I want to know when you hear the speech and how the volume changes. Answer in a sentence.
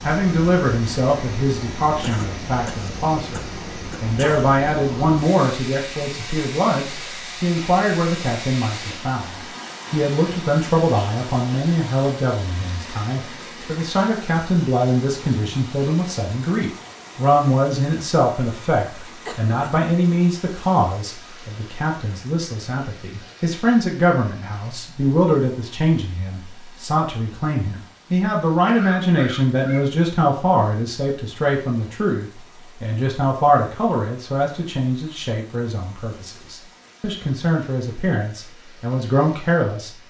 The speech can be heard from 0.0 to 39.9 s, at a steady volume.